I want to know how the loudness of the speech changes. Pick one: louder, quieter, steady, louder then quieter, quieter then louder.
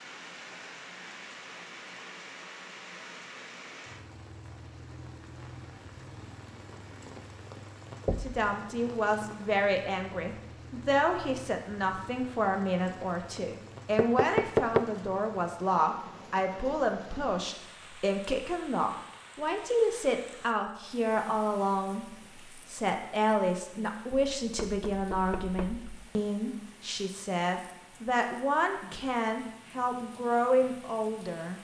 steady.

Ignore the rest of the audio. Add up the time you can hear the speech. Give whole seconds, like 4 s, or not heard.
23 s.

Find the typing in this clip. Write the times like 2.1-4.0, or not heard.
not heard.